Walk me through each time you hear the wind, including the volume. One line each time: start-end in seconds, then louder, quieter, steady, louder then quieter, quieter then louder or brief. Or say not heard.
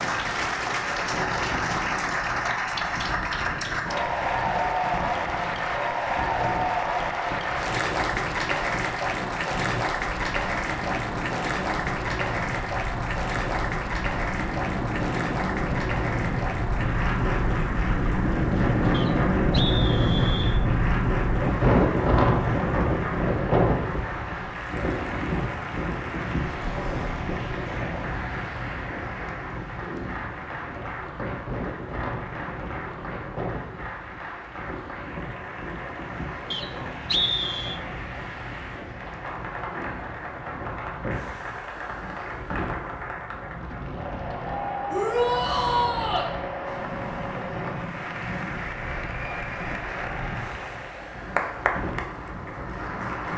0.0-53.3 louder then quieter.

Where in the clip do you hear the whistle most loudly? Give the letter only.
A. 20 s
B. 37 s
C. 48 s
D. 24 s
B.